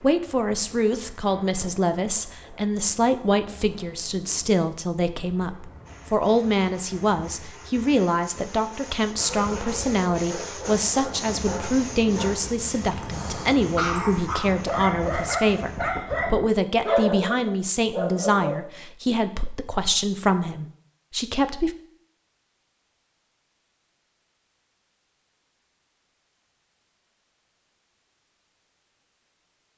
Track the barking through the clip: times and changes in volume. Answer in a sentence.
You can hear the barking from 9.2 to 18.6 s, getting louder.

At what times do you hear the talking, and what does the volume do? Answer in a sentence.
The talking can be heard from 0.0 to 21.7 s, at a steady volume.